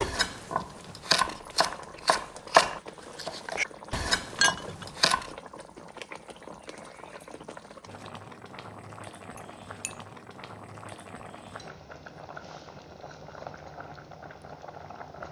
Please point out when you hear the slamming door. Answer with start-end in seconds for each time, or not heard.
not heard.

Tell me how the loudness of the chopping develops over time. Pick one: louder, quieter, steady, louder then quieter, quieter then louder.
louder then quieter.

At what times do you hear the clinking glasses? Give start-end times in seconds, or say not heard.
4.3-4.8, 9.3-9.9.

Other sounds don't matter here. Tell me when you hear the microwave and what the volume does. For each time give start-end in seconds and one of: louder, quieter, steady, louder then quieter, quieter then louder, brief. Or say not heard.
not heard.